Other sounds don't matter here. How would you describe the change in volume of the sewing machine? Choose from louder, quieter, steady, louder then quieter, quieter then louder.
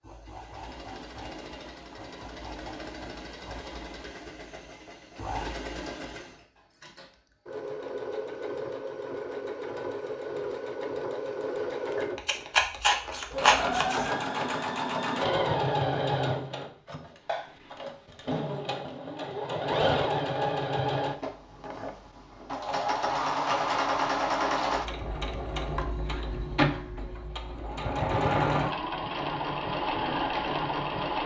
louder.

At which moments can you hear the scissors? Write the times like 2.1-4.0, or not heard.
12.2-14.1.